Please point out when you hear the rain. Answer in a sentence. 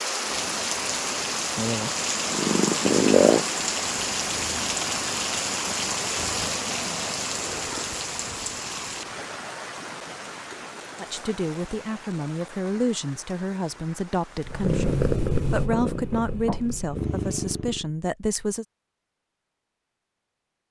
The rain can be heard from 0.0 to 15.1 s.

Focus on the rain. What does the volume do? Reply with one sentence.
The loudness of the rain goes down.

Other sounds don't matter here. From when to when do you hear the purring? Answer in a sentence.
You can hear the purring from 2.0 to 9.2 s and from 14.4 to 17.9 s.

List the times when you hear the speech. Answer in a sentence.
The speech can be heard from 11.0 to 18.6 s.